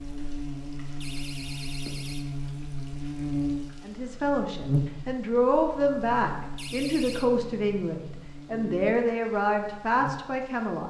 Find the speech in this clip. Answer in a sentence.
You can hear the speech from 3.9 to 10.8 s.